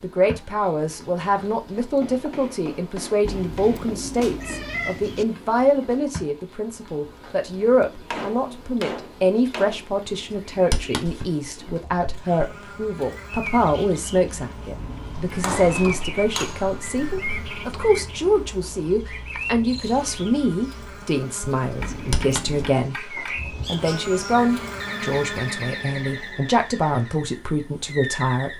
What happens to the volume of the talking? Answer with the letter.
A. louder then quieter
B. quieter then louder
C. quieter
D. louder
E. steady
E.